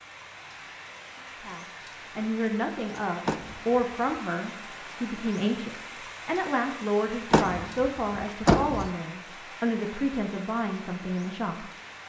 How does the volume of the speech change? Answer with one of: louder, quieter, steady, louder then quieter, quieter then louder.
steady.